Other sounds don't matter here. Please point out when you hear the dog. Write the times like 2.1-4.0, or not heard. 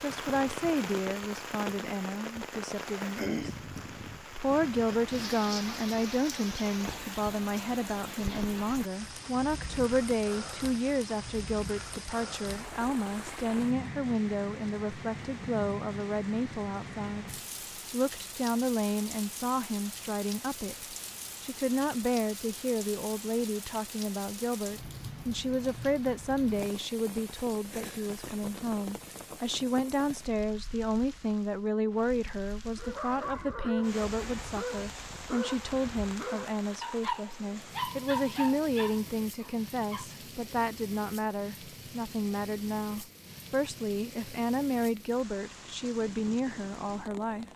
32.8-40.0.